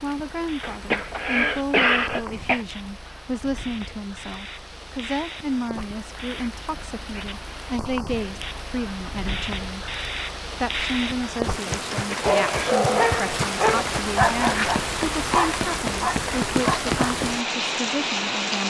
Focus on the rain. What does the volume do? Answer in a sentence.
The volume of the rain goes up.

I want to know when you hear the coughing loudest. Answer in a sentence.
The loudest moment of the coughing is at 2 seconds.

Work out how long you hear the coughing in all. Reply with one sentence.
You can hear the coughing for 3 seconds altogether.